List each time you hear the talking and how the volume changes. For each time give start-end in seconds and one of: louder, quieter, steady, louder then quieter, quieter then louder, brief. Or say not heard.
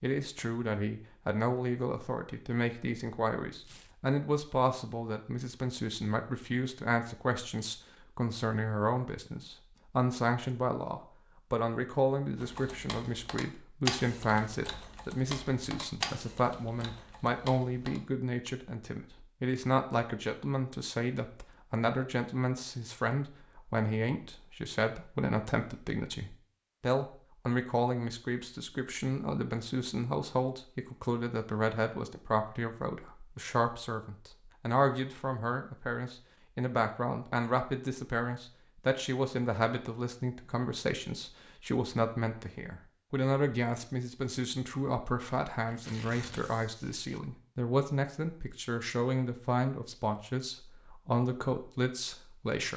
0.0-52.7 steady.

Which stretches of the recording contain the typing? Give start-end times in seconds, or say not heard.
12.3-18.0.